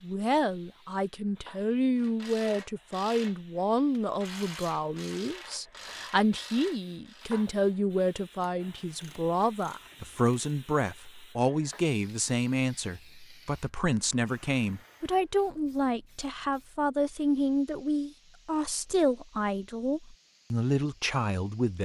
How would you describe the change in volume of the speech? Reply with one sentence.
The loudness of the speech stays about the same.